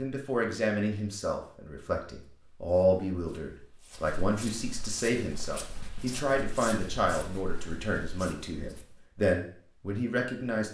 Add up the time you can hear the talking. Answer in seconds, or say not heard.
11 s.